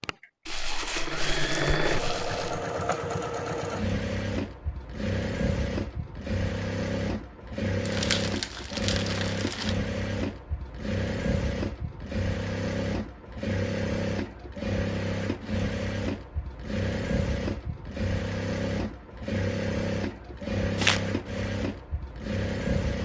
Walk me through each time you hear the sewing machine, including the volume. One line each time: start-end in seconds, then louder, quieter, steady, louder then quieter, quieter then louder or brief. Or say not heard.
0.0-23.0 steady.